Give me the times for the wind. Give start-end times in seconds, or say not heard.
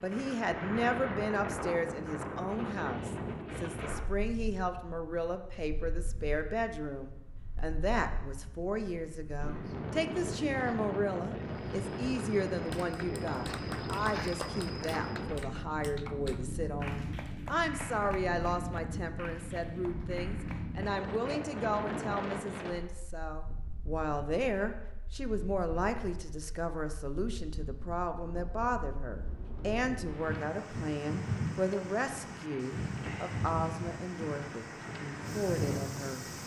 0.0-36.4.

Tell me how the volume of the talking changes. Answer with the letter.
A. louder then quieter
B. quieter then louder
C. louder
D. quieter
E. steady
E.